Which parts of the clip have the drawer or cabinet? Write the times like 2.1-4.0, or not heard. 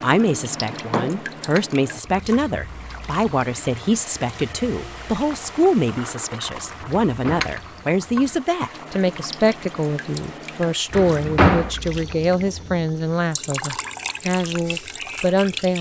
0.6-1.2, 7.0-7.5, 10.9-11.7.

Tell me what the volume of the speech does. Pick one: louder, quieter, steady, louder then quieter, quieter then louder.
steady.